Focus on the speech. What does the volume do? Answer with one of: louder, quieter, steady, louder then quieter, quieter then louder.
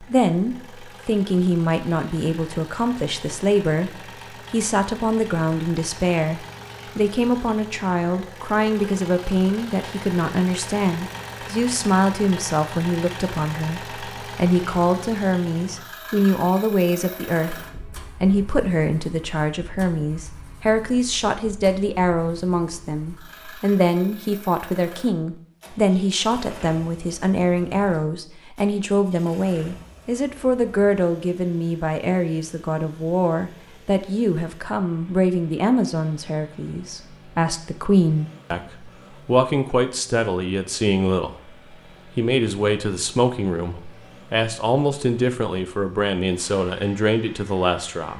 steady.